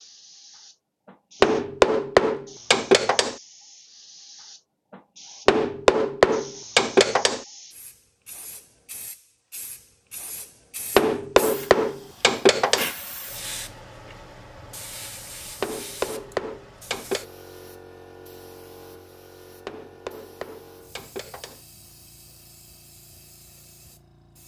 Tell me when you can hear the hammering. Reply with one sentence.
You can hear the hammering from 1.4 to 3.4 s, from 5.5 to 7.5 s, from 10.9 to 12.9 s, from 15.6 to 17.2 s and from 19.6 to 21.6 s.